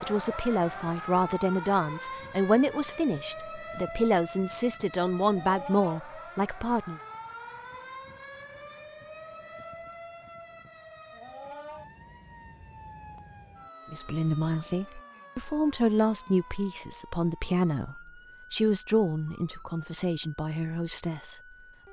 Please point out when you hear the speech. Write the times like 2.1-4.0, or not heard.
0.0-7.0, 13.9-21.8.